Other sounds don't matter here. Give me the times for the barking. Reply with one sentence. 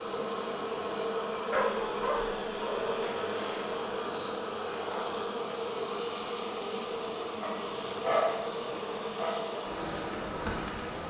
You can hear the barking from 1.5 to 3.0 s and from 7.4 to 9.4 s.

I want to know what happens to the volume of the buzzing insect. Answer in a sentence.
The volume of the buzzing insect stays about the same.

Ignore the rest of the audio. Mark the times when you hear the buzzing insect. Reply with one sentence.
You can hear the buzzing insect from 0.0 to 11.0 s.